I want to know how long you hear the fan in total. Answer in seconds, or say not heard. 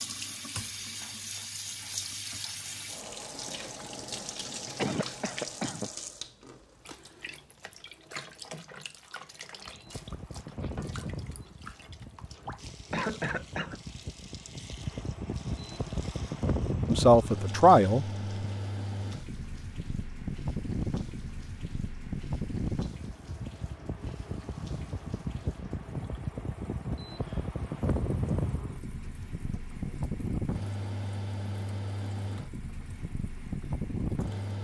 25 s.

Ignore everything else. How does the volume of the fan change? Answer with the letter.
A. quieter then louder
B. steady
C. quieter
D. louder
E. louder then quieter
D.